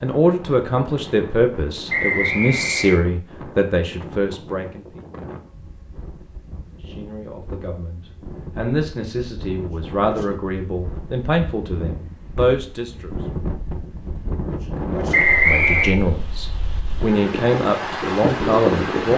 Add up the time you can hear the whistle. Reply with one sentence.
The whistle can be heard for 2 seconds in total.